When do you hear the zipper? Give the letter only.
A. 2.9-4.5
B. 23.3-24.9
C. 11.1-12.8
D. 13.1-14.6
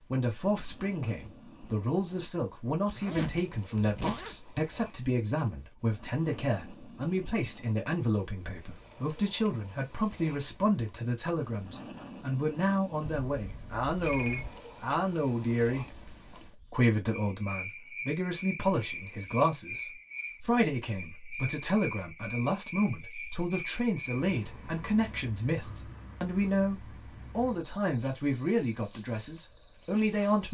A.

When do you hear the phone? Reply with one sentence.
You can hear the phone from 13.1 to 14.6 s.